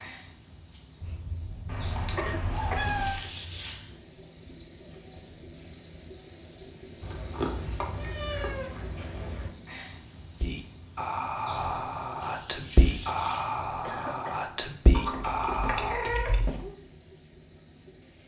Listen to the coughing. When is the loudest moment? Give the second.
2 s.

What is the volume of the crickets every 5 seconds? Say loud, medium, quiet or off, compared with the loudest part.
medium, loud, medium, medium.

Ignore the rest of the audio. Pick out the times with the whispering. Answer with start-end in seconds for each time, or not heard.
10.4-16.0.